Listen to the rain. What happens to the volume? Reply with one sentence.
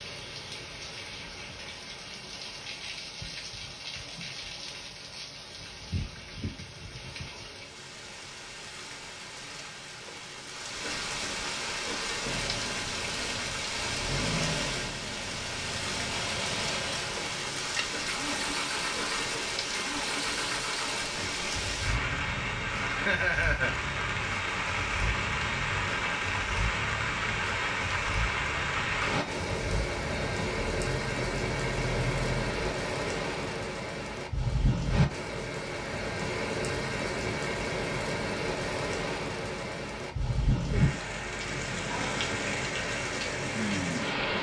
The volume of the rain goes up.